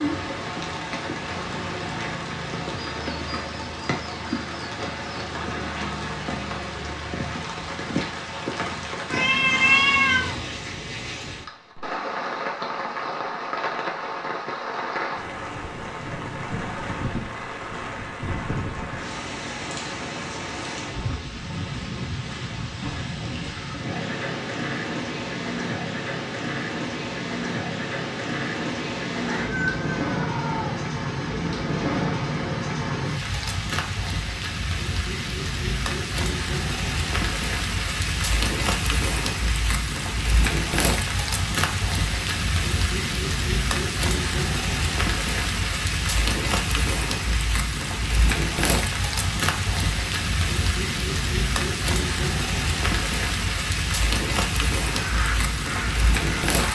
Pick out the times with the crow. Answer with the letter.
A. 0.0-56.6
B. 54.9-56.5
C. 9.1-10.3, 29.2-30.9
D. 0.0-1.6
B.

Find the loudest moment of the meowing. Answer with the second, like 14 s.
10 s.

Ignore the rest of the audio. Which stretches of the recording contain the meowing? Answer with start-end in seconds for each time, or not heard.
9.1-10.3, 29.2-30.9.